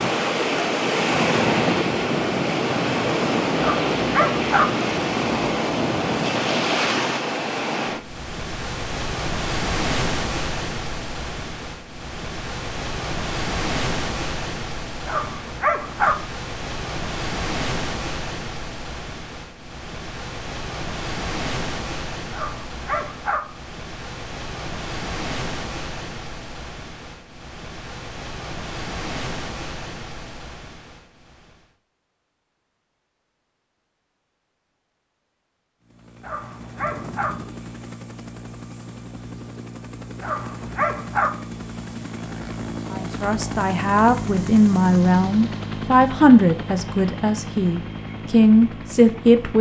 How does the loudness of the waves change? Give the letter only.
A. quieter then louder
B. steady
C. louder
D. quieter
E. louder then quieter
D.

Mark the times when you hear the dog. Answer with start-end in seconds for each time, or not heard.
3.5-4.7, 15.1-16.1, 22.3-23.4, 36.2-37.3, 40.2-41.3.